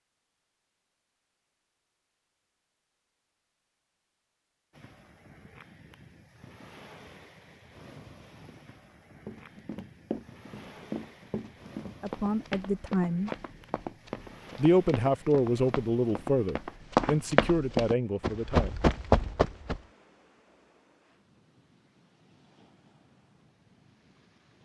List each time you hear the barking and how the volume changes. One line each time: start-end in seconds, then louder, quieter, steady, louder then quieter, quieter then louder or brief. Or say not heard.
not heard.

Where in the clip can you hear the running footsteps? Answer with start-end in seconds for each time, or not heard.
9.2-19.8.